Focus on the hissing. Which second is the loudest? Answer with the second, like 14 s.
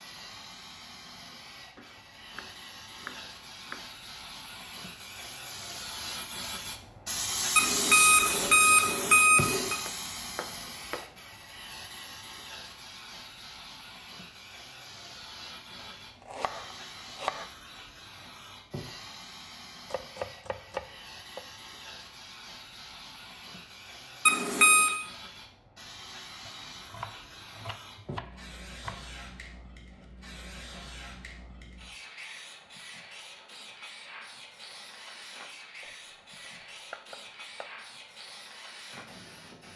8 s.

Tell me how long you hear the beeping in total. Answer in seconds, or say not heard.
3 s.